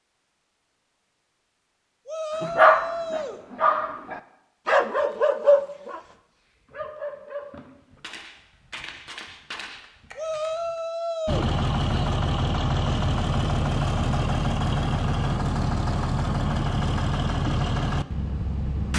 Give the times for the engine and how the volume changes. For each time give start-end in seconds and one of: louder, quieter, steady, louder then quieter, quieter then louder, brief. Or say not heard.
11.2-18.9 steady.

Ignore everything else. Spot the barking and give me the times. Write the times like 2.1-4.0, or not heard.
2.4-7.7.